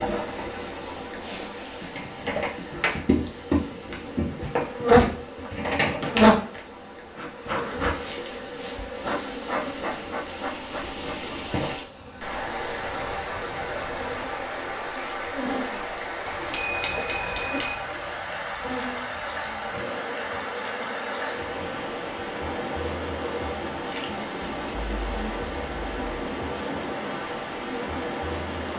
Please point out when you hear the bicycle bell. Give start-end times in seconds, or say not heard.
16.2-17.8.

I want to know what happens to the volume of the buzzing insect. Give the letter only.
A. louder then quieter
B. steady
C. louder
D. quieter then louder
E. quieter
E.